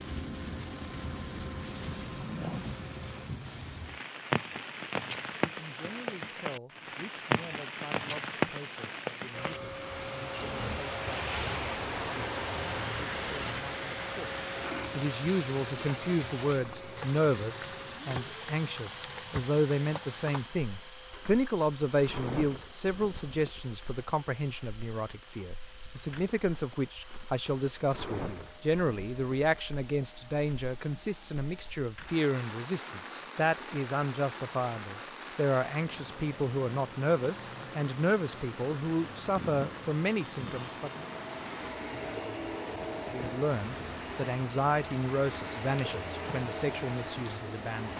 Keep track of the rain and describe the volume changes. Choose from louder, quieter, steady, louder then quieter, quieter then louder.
quieter.